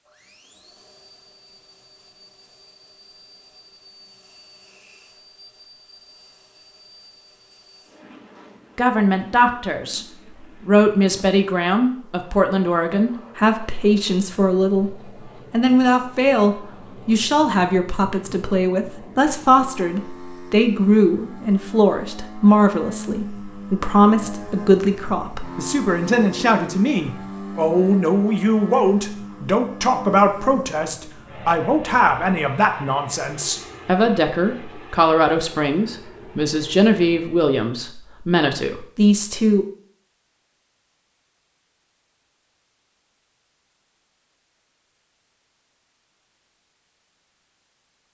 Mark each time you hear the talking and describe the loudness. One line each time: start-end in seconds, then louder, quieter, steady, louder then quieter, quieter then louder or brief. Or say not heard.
8.8-10.0 brief
10.7-39.6 steady.